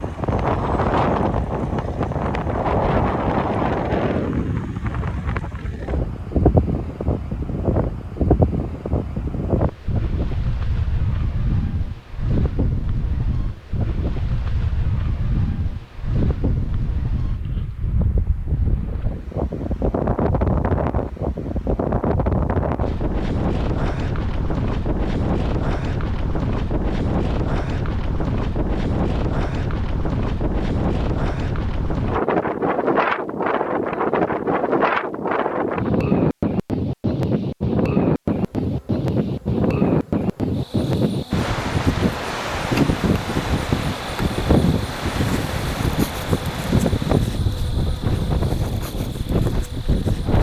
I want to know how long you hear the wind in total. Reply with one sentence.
You can hear the wind for 50 seconds altogether.